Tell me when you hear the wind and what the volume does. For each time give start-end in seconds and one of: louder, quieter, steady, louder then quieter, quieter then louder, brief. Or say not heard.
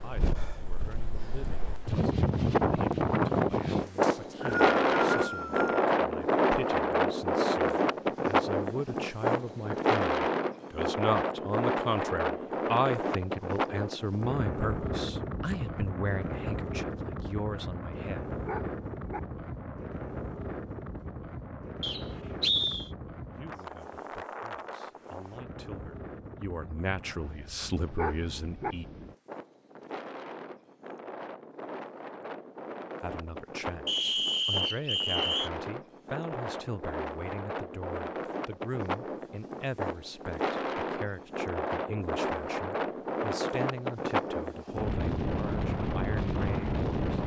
0.0-47.2 quieter then louder.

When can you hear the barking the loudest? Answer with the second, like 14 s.
28 s.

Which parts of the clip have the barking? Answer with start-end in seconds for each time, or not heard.
18.4-19.2, 27.9-28.8.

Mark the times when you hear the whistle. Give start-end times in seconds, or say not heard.
4.0-5.8, 21.8-22.9, 33.9-35.5.